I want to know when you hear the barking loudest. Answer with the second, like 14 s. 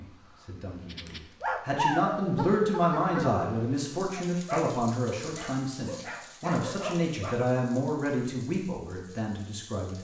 2 s.